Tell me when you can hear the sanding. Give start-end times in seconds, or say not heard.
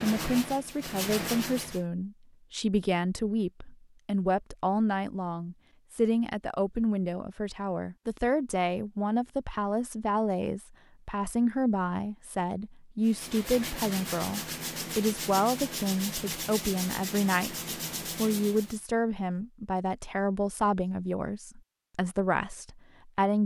0.0-1.9, 13.0-18.8.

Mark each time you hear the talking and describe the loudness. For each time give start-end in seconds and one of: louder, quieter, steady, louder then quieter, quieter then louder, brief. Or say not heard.
0.0-23.4 steady.